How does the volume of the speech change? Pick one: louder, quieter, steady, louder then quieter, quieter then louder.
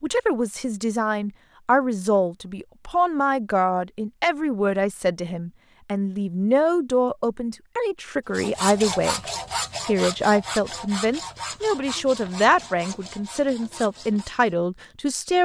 steady.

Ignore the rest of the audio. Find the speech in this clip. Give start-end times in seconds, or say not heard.
0.0-9.2, 9.8-15.4.